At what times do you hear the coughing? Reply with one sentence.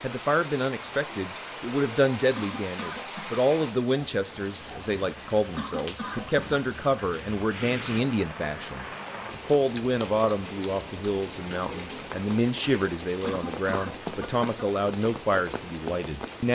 You can hear the coughing from 2.4 to 3.4 s, from 5.5 to 6.5 s and from 13.2 to 14.5 s.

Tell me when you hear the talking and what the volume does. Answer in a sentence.
You can hear the talking from 0.0 to 16.5 s, at a steady volume.